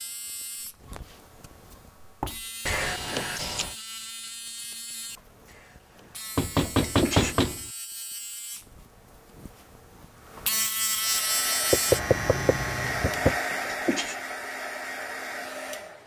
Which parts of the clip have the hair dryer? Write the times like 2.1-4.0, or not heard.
10.9-16.0.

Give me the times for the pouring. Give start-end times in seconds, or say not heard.
not heard.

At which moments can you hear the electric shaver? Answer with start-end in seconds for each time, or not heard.
0.0-13.3.